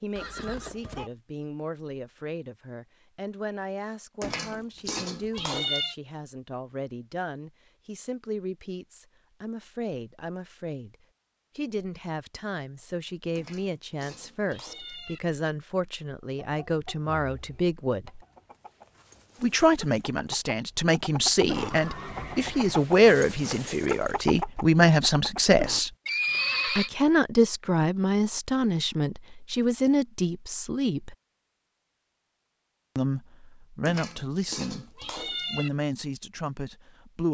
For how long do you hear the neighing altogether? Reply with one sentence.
You can hear the neighing for 3 seconds altogether.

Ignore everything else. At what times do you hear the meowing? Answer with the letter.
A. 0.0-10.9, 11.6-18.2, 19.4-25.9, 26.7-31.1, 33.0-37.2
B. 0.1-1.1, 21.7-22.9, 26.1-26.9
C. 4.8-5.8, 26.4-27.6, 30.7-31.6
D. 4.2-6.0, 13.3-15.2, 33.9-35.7
D.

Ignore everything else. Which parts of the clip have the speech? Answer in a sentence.
The speech can be heard from 0.0 to 10.9 s, from 11.6 to 18.2 s, from 19.4 to 25.9 s, from 26.7 to 31.1 s and from 33.0 to 37.2 s.